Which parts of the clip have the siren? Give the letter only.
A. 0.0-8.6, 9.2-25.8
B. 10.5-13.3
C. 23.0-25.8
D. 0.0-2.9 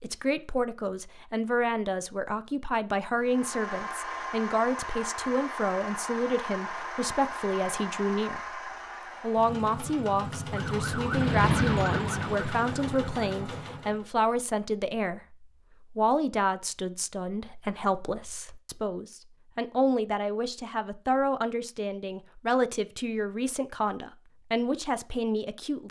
B.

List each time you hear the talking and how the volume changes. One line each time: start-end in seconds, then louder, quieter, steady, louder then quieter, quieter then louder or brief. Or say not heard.
0.0-8.6 steady
9.2-25.8 steady.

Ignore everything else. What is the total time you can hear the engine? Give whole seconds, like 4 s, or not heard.
11 s.